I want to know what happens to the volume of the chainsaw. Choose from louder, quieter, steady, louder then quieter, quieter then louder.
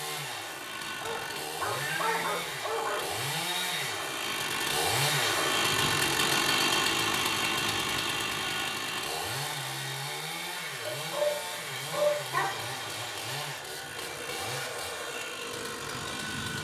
louder then quieter.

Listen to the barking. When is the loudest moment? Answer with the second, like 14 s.
12 s.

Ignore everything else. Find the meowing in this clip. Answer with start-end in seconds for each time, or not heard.
1.8-2.4, 11.1-12.2.